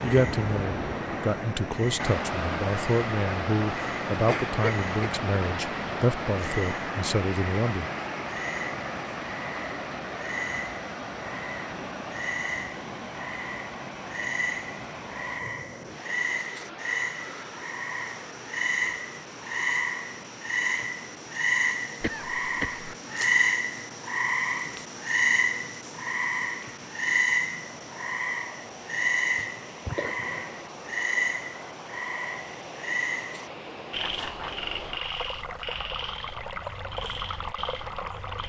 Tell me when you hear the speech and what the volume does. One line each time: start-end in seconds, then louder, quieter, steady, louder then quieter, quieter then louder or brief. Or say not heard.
0.0-7.9 steady.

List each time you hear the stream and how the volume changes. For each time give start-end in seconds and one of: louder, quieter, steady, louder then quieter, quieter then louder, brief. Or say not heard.
0.0-38.4 quieter then louder.